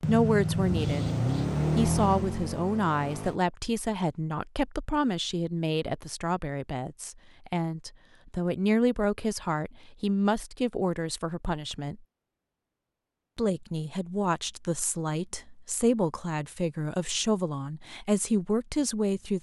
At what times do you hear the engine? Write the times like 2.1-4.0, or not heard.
0.0-3.4.